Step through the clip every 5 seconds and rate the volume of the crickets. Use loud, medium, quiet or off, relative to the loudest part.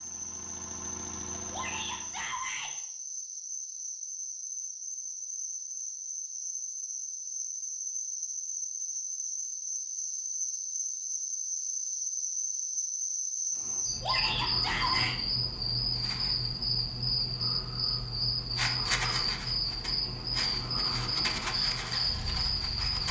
medium, medium, loud, loud, loud.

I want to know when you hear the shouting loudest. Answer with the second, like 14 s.
15 s.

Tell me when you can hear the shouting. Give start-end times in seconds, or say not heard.
1.5-2.7, 14.0-15.2.